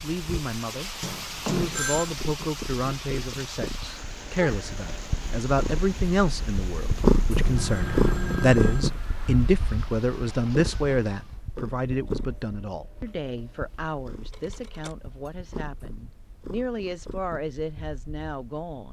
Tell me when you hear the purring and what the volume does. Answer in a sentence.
The purring can be heard from 0.1 to 18.8 s, getting louder then quieter.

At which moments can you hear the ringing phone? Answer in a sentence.
You can hear the ringing phone from 1.0 to 2.1 s, from 7.4 to 8.9 s and from 14.3 to 15.3 s.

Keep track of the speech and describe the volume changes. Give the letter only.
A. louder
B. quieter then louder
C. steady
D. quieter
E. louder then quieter
E.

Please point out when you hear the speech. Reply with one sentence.
You can hear the speech from 0.0 to 18.8 s.